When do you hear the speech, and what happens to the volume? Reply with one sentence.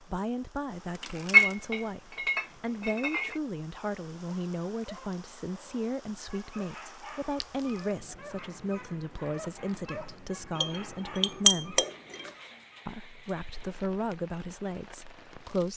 The speech can be heard from 0.0 to 11.8 s, at a steady volume; and briefly from 12.8 to 15.7 s.